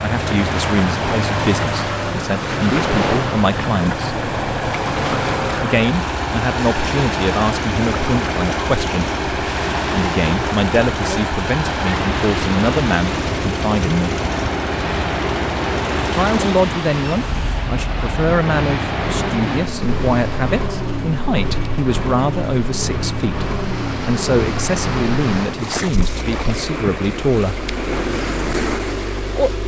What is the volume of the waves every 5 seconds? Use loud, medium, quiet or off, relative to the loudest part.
loud, loud, loud, loud, medium, loud.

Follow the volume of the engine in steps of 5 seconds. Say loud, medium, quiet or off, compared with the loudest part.
loud, loud, loud, loud, loud, medium.